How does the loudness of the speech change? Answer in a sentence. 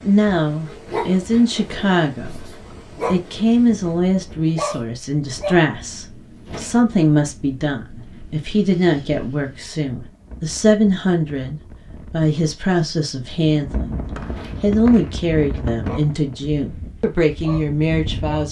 The loudness of the speech stays about the same.